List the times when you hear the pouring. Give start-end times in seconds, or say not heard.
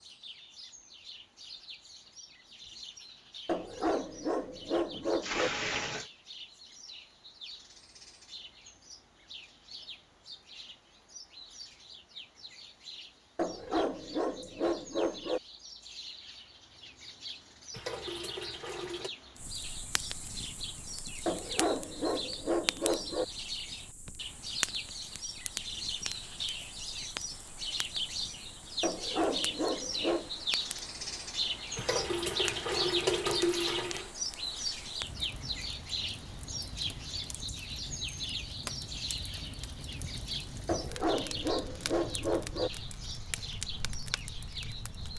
4.9-6.1, 17.7-19.1, 31.8-34.1.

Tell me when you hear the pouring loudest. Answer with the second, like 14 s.
33 s.